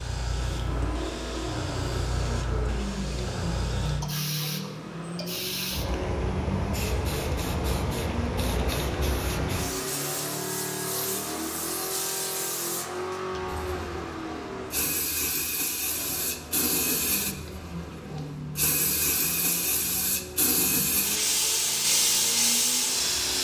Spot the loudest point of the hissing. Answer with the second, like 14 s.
22 s.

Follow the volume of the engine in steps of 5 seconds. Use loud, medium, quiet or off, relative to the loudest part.
loud, loud, loud, medium, medium.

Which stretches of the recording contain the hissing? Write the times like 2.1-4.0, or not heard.
0.0-23.3.